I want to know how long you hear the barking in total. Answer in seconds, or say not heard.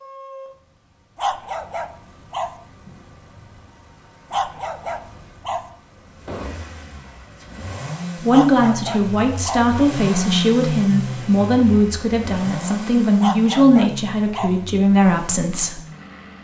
5 s.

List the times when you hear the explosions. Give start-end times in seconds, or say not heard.
6.2-6.8.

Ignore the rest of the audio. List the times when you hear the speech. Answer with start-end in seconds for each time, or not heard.
8.2-15.8.